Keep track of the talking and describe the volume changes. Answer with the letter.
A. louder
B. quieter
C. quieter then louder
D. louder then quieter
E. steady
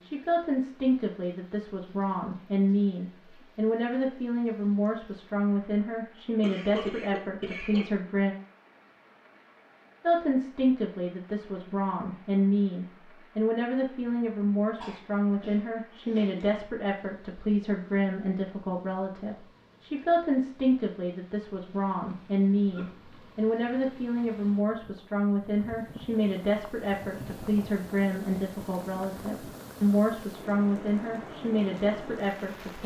E.